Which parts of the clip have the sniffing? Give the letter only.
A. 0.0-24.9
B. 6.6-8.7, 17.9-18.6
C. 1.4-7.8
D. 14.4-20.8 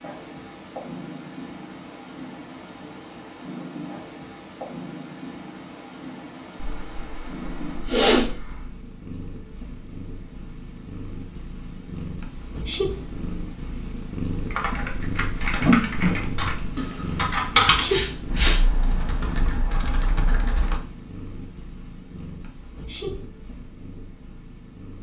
B.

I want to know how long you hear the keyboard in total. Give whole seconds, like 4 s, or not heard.
6 s.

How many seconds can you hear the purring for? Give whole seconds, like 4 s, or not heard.
25 s.